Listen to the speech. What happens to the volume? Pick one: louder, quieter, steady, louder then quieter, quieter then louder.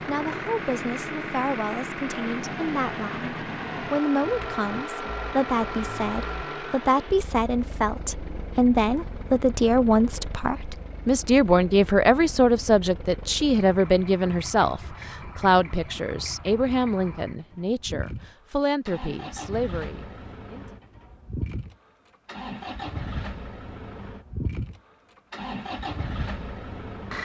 louder then quieter.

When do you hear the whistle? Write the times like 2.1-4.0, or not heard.
not heard.